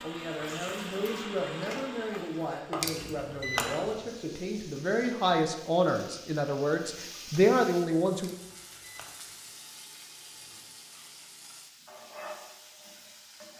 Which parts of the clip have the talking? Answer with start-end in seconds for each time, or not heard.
0.0-8.3.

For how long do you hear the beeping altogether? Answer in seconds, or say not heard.
2 s.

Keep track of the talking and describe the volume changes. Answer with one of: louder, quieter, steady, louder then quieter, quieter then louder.
louder.